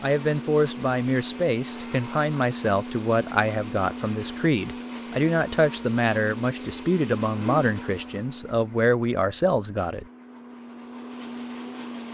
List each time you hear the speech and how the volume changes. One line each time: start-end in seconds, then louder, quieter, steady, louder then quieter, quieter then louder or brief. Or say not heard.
0.0-10.1 steady.